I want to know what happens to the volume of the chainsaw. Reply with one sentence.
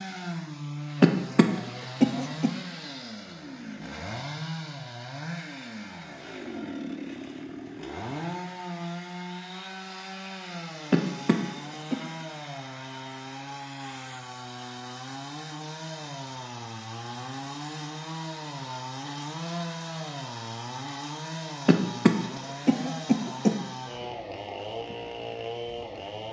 The volume of the chainsaw stays about the same.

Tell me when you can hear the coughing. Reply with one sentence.
The coughing can be heard from 1.0 to 2.5 s, from 10.9 to 11.9 s and from 21.6 to 23.5 s.